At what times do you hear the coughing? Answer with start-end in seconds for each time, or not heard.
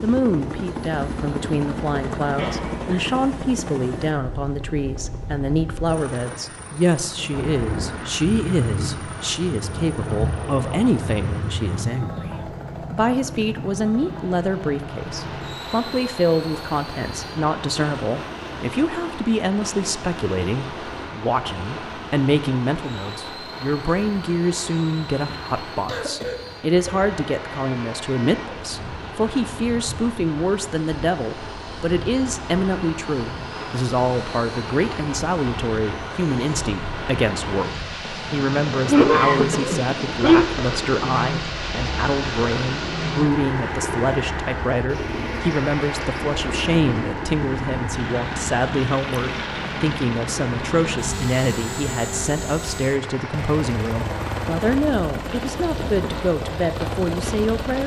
2.4-3.1, 25.9-27.1, 38.9-40.5.